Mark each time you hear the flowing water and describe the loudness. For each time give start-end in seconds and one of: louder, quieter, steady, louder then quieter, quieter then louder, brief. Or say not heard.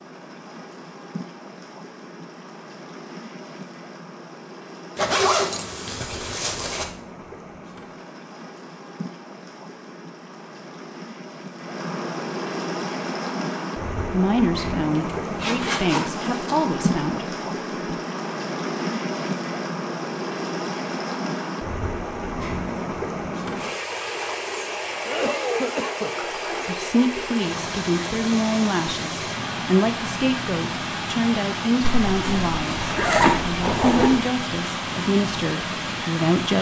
0.0-36.5 louder.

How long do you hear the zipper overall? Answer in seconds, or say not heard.
6 s.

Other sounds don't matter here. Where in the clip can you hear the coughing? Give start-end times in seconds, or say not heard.
25.1-26.1.